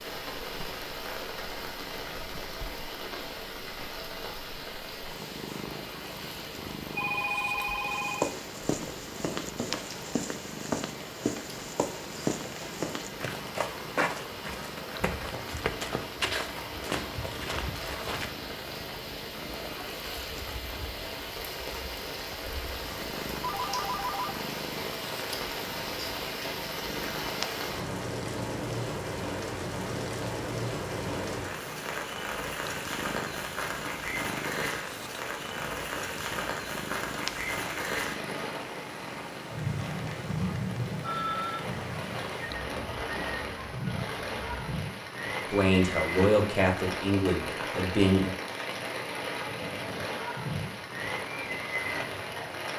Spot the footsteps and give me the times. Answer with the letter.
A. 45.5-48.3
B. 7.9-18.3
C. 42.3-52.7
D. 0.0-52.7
B.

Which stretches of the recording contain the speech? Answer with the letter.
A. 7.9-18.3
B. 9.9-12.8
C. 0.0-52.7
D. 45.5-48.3
D.